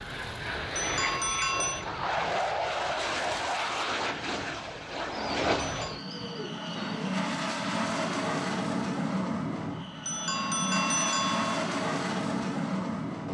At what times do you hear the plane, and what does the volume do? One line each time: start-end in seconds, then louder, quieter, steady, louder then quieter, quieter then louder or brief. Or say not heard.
0.0-13.3 steady.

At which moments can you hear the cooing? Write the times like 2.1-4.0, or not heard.
5.1-7.2.